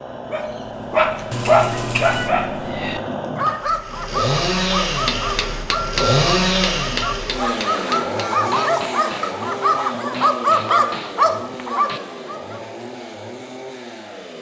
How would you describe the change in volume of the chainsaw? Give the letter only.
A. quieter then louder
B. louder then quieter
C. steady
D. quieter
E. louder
B.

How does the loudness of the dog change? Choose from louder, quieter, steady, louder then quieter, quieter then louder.
quieter then louder.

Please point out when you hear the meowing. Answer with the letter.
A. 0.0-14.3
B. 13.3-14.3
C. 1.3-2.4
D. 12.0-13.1
C.